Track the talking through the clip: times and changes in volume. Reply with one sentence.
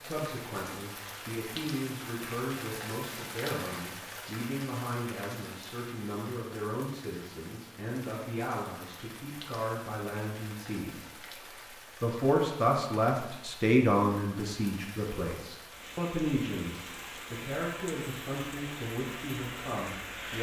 You can hear the talking from 0.0 to 11.2 s, at a steady volume; and from 12.0 to 20.3 s, getting quieter.